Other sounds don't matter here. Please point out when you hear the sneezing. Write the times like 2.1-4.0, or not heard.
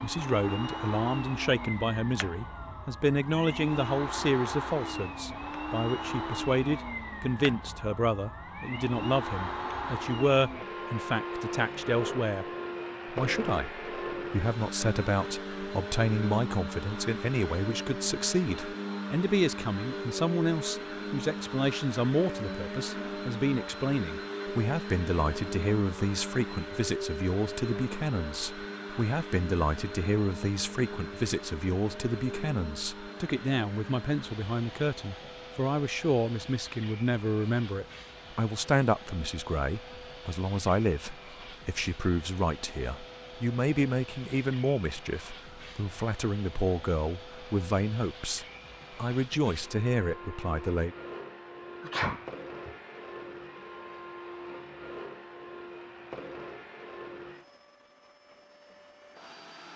51.8-52.8.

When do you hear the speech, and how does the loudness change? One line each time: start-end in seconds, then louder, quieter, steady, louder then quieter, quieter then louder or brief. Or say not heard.
0.0-12.4 steady
13.1-51.0 steady.